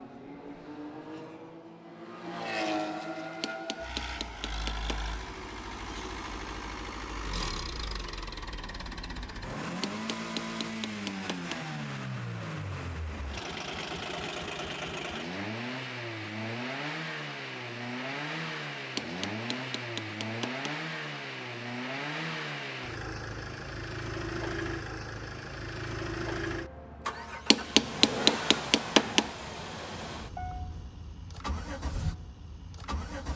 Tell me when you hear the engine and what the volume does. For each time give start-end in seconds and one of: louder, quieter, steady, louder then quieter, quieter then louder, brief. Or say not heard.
0.0-33.3 steady.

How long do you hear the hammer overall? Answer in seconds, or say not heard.
7 s.